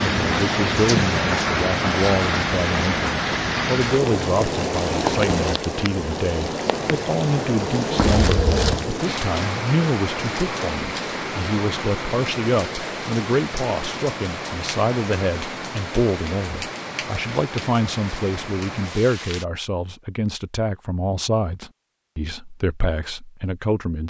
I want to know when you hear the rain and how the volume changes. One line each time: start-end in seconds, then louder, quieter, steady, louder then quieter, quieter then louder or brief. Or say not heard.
0.0-19.4 quieter.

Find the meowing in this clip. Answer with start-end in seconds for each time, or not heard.
8.0-8.9.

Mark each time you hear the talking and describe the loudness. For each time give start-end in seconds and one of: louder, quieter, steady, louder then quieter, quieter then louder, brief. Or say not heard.
0.0-24.0 steady.